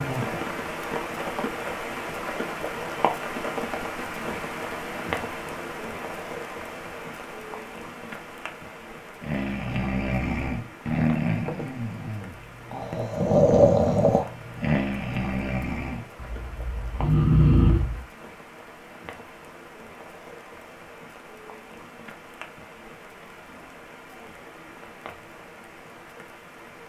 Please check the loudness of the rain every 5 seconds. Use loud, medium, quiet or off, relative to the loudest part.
loud, medium, quiet, quiet, quiet, quiet.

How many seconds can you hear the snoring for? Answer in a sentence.
The snoring can be heard for 9 seconds in total.